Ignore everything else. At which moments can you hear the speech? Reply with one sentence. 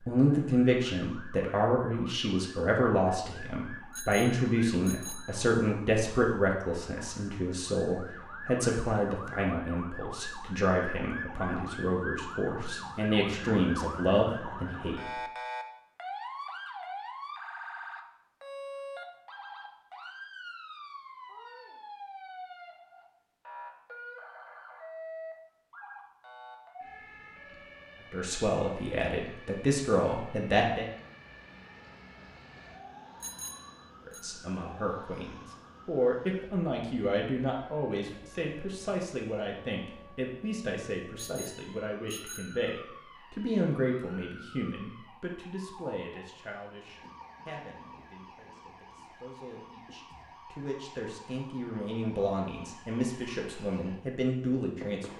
You can hear the speech from 0.1 to 15.0 s, from 28.1 to 30.9 s and from 34.0 to 55.1 s.